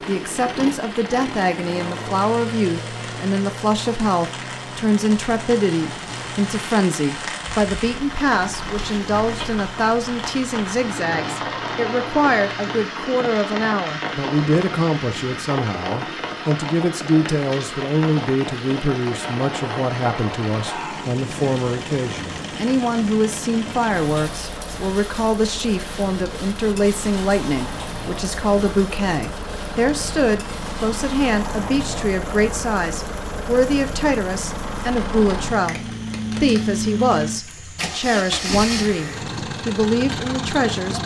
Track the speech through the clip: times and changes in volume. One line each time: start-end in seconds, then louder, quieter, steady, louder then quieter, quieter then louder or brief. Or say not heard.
0.1-41.0 steady.